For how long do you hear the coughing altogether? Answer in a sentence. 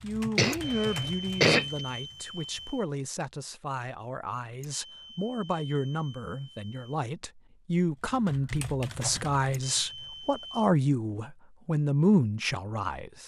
The coughing can be heard for 2 seconds in total.